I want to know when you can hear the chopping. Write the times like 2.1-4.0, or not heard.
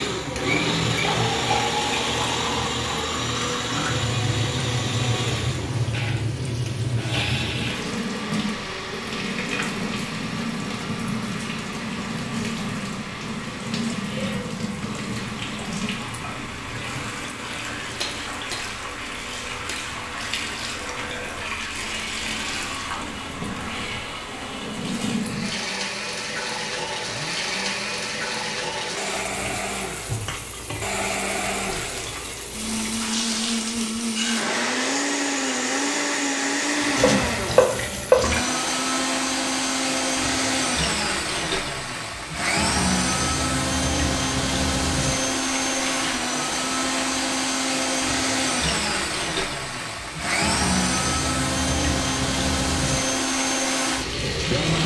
37.0-38.2.